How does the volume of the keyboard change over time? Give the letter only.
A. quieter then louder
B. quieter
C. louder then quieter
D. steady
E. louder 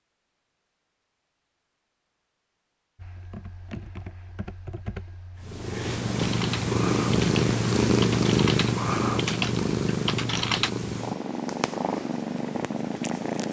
E.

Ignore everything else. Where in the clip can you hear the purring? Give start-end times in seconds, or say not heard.
5.4-13.4.